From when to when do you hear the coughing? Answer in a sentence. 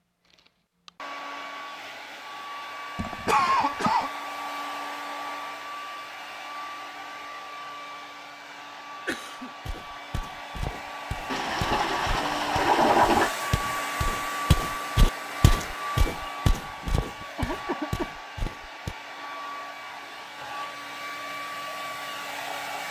You can hear the coughing from 3.0 to 4.1 s, from 9.1 to 9.5 s and from 17.4 to 18.1 s.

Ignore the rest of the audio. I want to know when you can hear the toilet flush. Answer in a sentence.
The toilet flush can be heard from 11.3 to 13.3 s.